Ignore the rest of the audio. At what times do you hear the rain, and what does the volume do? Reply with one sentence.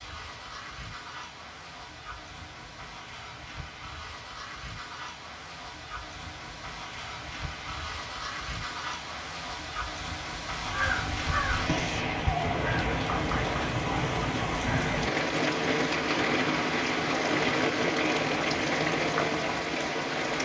The rain can be heard from 0.0 to 20.4 s, getting louder.